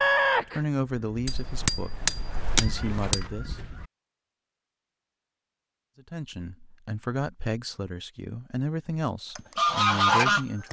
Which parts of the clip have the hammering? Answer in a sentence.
The hammering can be heard from 1.2 to 3.2 s.